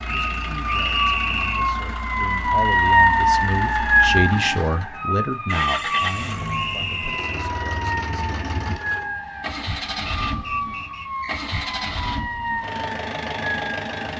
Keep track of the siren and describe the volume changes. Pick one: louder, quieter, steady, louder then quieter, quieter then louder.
quieter.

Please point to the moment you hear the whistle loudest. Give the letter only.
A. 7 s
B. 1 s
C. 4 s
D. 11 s
B.